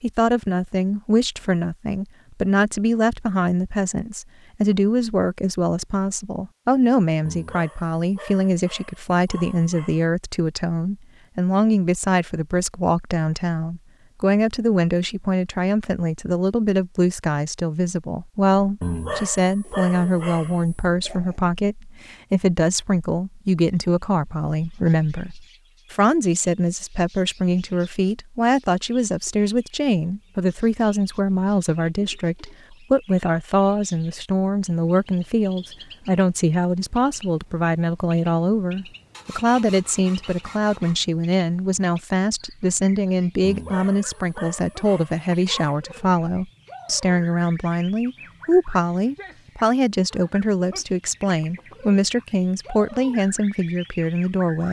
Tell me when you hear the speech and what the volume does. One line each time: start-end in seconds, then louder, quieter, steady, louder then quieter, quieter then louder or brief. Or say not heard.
0.0-54.6 steady.